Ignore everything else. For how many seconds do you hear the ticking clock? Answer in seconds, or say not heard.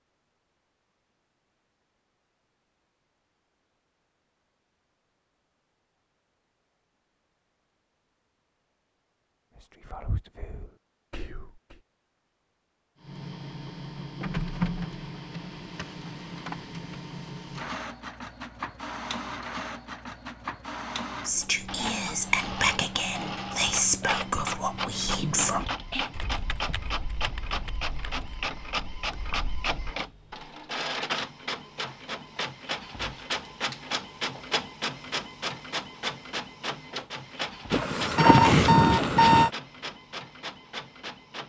not heard.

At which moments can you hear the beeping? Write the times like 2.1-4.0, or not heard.
37.7-39.5.